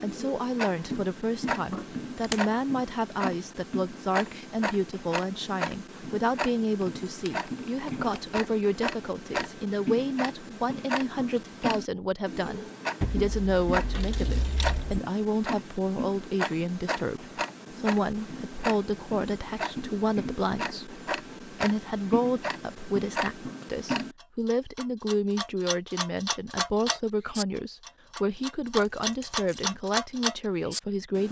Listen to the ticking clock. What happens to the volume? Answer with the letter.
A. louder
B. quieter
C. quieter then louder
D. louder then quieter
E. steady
E.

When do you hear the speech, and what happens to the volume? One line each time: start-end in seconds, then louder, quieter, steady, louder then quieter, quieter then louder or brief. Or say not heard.
0.0-31.2 steady.